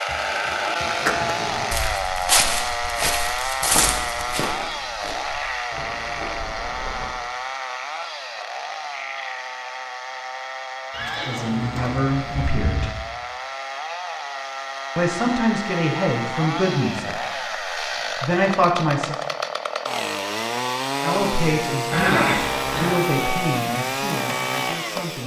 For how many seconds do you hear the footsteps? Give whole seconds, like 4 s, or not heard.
6 s.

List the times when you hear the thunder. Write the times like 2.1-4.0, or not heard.
not heard.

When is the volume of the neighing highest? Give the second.
22 s.